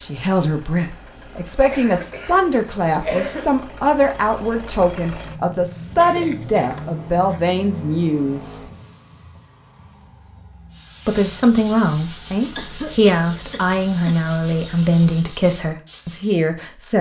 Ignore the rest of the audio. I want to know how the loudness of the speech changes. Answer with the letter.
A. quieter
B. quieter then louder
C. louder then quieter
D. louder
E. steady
E.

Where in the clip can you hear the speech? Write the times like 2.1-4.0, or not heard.
0.0-8.6, 11.1-16.9.